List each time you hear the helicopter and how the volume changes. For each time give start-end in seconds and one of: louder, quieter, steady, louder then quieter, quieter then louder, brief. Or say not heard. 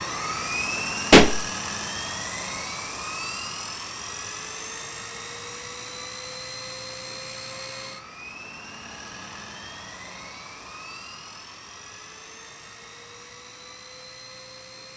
0.0-14.9 quieter.